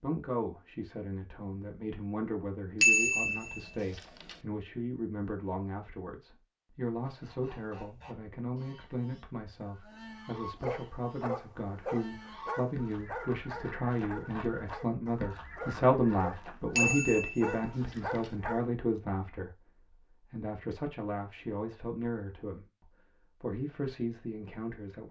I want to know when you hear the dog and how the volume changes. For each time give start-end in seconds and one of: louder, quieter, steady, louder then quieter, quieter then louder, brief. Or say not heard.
10.5-18.6 quieter then louder.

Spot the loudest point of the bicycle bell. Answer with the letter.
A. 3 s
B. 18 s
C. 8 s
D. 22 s
A.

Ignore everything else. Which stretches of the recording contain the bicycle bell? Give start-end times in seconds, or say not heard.
2.8-4.3, 16.8-18.3.